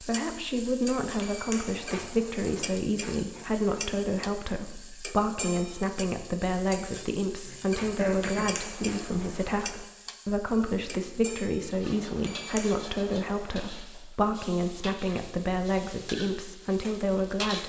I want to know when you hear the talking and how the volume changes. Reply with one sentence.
The talking can be heard from 0.0 to 17.6 s, at a steady volume.